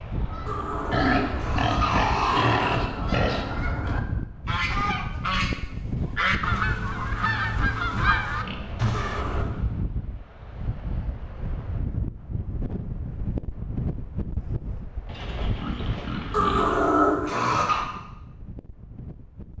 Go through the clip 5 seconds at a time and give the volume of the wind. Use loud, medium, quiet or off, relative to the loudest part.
loud, loud, loud, medium.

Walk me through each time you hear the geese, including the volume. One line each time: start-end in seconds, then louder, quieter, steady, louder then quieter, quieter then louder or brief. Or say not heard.
0.1-9.4 louder.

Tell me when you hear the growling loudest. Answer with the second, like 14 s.
17 s.